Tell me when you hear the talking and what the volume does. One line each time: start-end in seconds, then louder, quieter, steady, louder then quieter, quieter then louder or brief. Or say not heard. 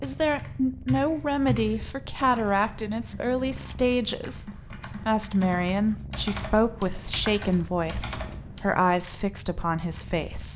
0.0-10.5 steady.